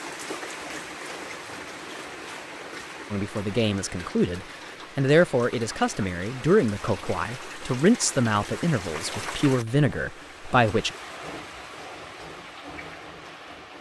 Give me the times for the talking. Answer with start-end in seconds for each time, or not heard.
3.1-10.9.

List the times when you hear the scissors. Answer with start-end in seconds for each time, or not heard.
not heard.